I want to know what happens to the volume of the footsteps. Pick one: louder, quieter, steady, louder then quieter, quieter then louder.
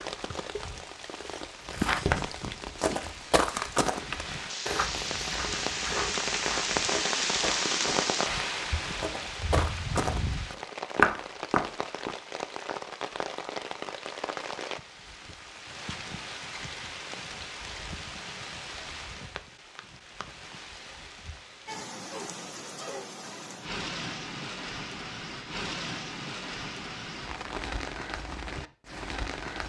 quieter then louder.